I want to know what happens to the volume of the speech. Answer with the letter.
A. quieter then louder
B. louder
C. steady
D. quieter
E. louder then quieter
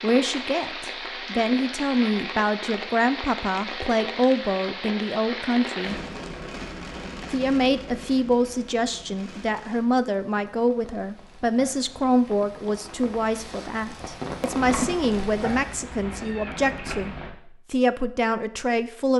C.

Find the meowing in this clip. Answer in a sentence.
You can hear the meowing from 14.6 to 17.4 s.